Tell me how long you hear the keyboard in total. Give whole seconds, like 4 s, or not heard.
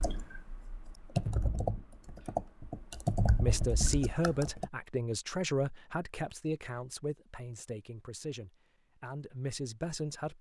5 s.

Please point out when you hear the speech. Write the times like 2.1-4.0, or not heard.
3.4-10.3.